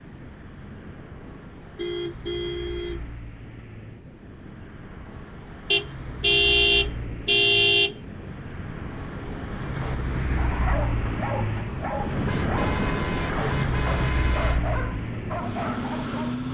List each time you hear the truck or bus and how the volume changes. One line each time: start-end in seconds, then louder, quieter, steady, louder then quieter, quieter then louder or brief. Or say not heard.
0.0-16.4 louder.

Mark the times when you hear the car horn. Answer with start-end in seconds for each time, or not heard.
1.8-3.1, 5.7-8.0, 12.1-14.6.